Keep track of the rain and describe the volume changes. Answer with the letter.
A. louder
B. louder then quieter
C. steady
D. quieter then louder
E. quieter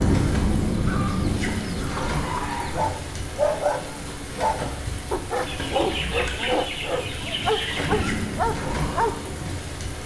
D.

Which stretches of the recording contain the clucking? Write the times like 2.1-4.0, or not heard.
0.1-2.8, 5.5-8.1.